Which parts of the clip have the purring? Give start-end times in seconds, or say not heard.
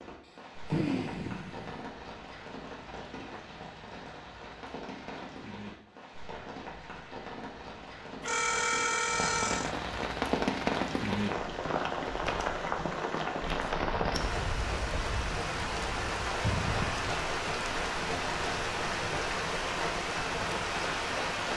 not heard.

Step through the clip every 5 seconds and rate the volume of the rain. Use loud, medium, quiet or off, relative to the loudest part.
quiet, medium, loud, loud, loud.